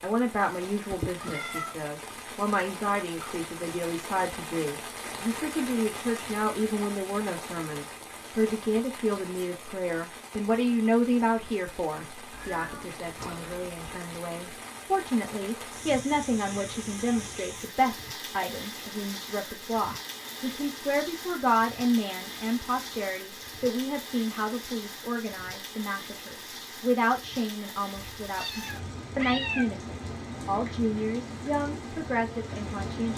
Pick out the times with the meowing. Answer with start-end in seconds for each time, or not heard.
0.9-1.8, 12.3-14.0, 27.9-29.6.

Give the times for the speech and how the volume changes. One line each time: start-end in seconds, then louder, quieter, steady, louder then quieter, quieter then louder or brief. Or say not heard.
0.0-33.1 steady.